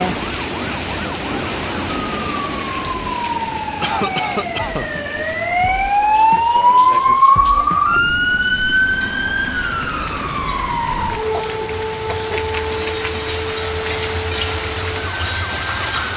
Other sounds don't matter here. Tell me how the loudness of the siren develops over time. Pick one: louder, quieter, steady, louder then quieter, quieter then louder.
louder then quieter.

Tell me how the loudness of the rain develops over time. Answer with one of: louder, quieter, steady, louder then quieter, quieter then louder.
quieter then louder.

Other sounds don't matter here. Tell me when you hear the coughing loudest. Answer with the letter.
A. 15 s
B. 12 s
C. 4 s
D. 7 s
C.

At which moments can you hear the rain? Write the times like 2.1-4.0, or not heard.
0.0-16.1.